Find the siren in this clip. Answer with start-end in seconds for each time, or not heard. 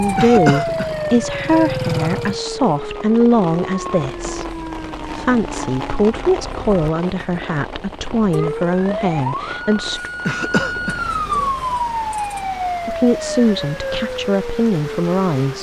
0.0-15.5.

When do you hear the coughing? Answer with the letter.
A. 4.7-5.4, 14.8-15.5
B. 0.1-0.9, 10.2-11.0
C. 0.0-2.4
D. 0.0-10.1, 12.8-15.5
B.